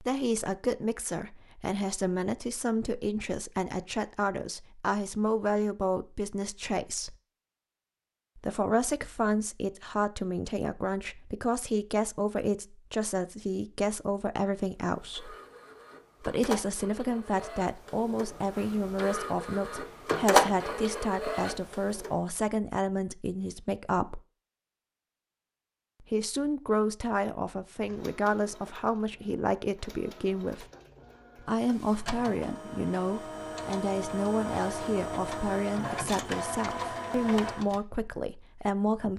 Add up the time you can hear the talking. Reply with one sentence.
You can hear the talking for 34 seconds altogether.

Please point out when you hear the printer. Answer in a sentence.
You can hear the printer from 14.8 to 22.2 s and from 27.8 to 37.8 s.